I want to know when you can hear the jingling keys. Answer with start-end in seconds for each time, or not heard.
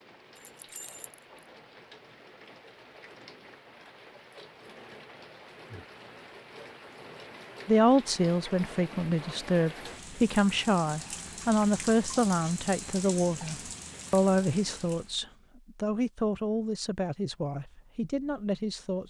0.3-1.4.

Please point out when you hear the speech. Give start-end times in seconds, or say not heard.
7.7-19.0.